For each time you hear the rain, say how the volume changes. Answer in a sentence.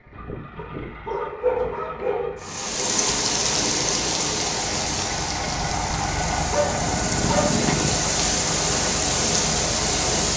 You can hear the rain from 2.4 to 10.3 s, getting quieter then louder.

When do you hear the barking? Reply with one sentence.
The barking can be heard from 0.6 to 2.5 s and from 6.5 to 8.2 s.